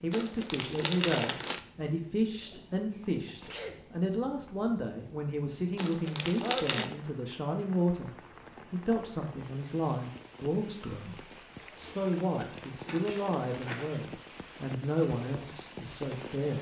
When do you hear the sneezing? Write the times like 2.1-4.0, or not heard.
2.4-3.8, 6.4-6.9, 12.8-14.0.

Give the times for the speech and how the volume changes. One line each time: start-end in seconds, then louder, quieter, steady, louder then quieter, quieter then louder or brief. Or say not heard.
0.0-16.5 steady.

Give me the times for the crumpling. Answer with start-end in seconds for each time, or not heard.
0.1-1.6, 5.8-6.9, 12.2-13.9.